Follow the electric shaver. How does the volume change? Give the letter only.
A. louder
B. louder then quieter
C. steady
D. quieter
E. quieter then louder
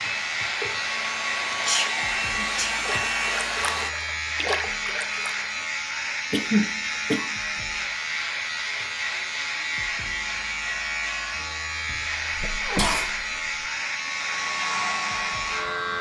C.